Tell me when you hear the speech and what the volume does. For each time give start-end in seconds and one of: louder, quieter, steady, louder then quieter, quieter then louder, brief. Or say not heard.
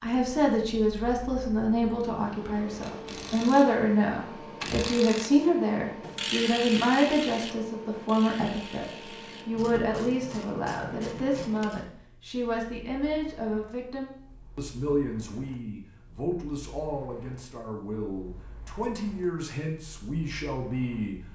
0.0-21.1 quieter.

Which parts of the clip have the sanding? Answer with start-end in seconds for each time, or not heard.
not heard.